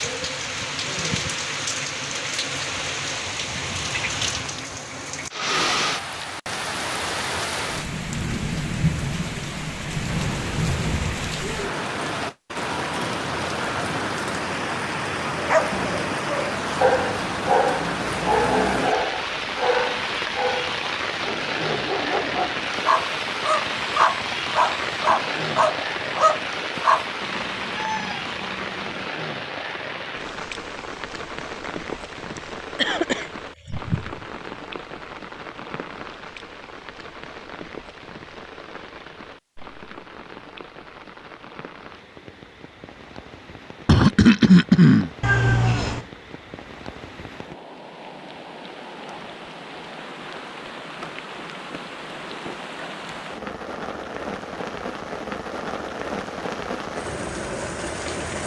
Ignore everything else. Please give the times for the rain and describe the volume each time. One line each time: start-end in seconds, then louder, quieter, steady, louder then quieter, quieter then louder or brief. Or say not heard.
0.0-58.4 quieter then louder.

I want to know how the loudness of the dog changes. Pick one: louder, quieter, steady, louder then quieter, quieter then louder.
quieter then louder.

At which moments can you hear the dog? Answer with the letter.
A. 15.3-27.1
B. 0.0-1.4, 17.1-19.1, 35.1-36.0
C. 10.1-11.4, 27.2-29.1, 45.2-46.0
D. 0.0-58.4
A.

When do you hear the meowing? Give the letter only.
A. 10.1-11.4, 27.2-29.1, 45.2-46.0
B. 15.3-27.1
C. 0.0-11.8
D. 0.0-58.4
A.